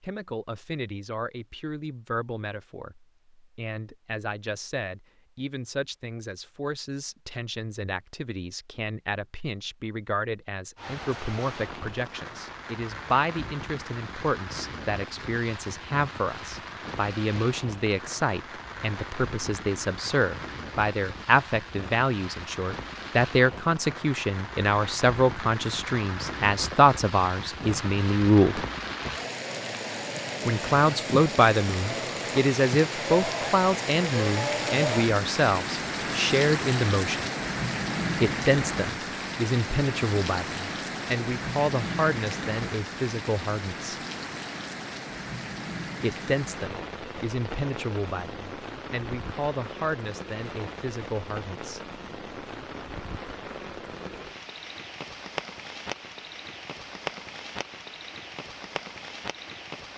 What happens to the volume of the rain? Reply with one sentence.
The volume of the rain goes up, then down.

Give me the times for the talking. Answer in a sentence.
You can hear the talking from 0.0 to 28.6 s, from 30.4 to 37.3 s, from 38.2 to 44.0 s and from 46.0 to 51.8 s.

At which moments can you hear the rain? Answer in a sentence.
The rain can be heard from 10.8 to 59.9 s.